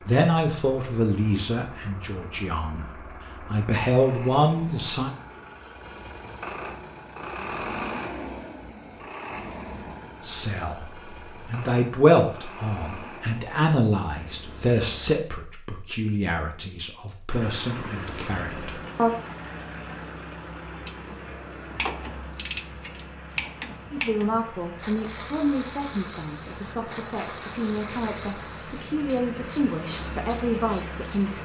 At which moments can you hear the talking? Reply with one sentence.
You can hear the talking from 0.1 to 5.1 s, from 10.2 to 19.1 s and from 23.9 to 31.3 s.